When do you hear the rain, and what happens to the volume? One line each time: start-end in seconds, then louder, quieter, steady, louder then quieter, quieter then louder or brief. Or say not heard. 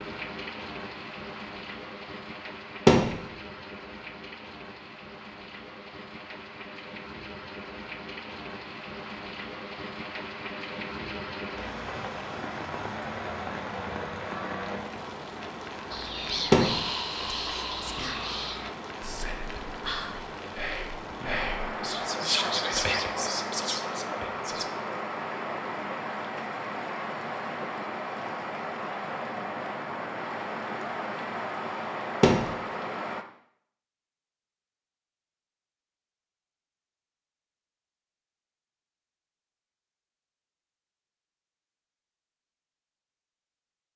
0.0-33.2 louder.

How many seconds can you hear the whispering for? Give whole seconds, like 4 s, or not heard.
9 s.